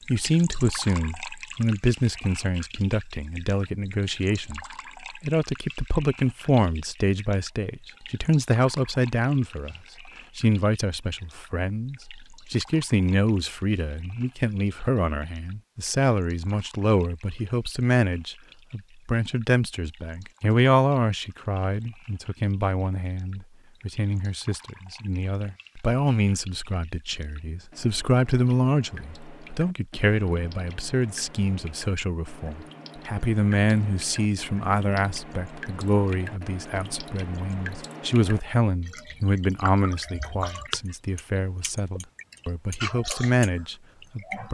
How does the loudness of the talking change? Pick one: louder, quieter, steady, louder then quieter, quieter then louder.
steady.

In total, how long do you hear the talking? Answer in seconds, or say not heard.
44 s.